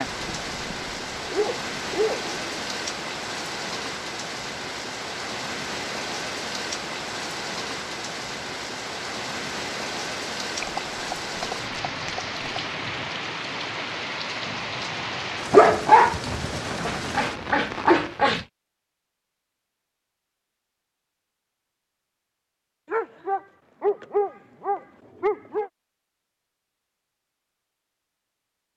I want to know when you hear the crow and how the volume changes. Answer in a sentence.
The crow can't be heard in this clip.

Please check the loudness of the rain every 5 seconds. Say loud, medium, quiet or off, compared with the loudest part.
loud, loud, loud, loud, off, off.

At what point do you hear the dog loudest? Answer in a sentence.
The volume of the dog peaks at 16 seconds.